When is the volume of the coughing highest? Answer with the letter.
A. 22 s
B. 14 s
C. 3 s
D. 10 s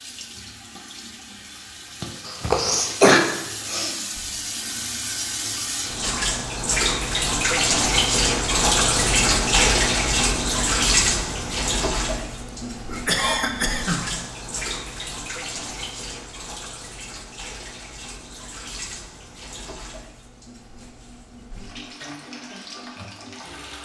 C.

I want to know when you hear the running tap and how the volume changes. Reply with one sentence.
The running tap can be heard from 0.0 to 23.8 s, getting louder then quieter.